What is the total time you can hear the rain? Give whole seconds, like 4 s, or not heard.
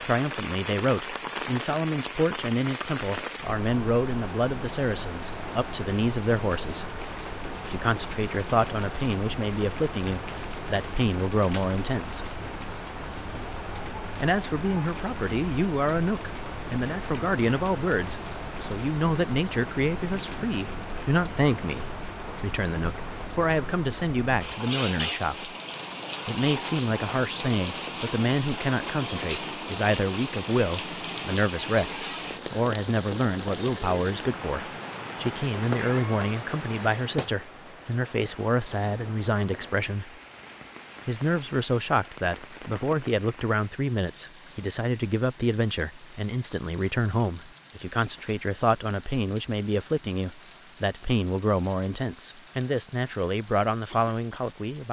55 s.